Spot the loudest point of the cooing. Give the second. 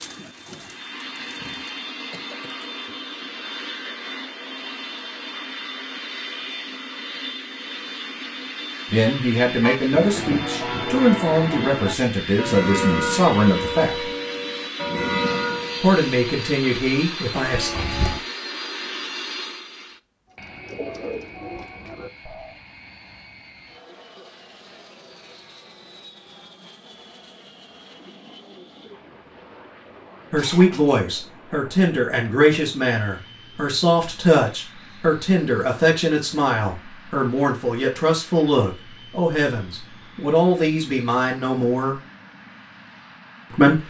21 s.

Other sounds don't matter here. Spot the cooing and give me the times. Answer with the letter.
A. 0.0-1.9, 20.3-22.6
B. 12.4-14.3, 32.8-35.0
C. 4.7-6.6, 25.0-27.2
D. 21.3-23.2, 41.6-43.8
A.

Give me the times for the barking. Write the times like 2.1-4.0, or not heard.
not heard.